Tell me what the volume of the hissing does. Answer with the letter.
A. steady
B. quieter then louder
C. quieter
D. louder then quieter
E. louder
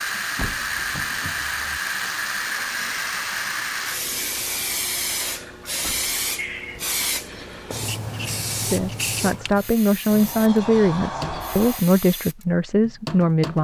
C.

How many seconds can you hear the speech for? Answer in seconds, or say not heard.
5 s.